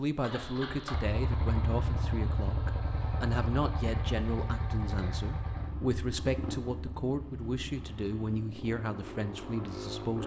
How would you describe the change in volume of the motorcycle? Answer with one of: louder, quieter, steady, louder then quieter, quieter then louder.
quieter.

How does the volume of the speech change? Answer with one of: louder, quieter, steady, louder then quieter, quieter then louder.
steady.